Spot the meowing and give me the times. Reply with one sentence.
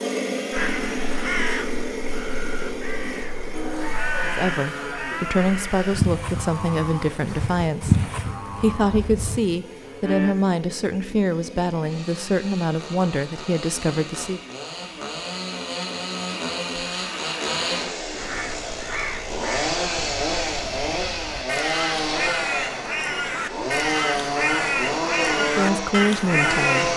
You can't hear the meowing here.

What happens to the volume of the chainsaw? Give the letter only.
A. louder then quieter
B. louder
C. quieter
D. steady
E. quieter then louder
E.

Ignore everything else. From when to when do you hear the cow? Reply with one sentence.
The cow can be heard from 3.5 to 10.3 s.